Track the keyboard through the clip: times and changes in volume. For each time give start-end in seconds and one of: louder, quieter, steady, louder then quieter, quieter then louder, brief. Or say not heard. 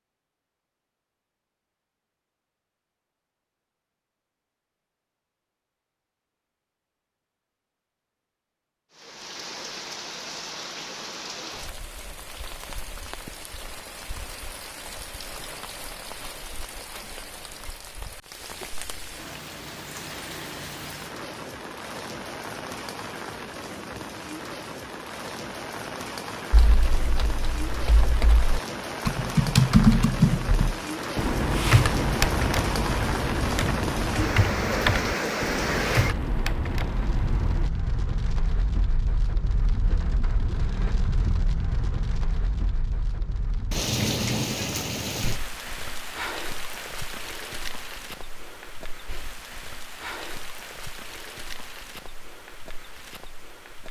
26.5-37.7 louder then quieter.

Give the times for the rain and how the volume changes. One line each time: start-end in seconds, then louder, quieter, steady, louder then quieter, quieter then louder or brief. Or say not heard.
8.9-53.8 louder then quieter.